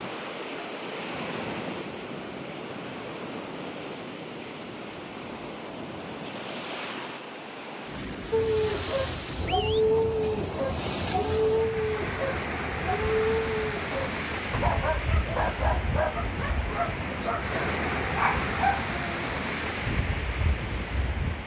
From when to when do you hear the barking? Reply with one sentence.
You can hear the barking from 8.3 to 19.2 s.